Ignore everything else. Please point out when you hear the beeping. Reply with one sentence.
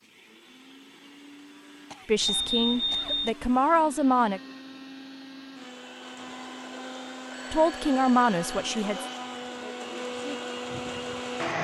You can hear the beeping from 2.2 to 3.4 s and from 7.3 to 8.4 s.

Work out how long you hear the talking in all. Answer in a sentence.
The talking can be heard for 4 seconds in total.